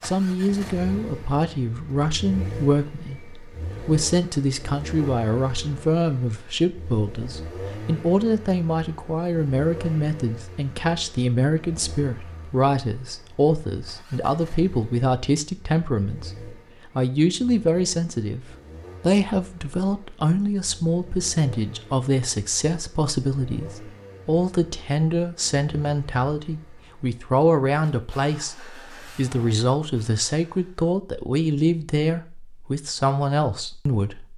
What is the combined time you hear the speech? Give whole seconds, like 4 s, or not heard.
34 s.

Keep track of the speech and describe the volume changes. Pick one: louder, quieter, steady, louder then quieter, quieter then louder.
steady.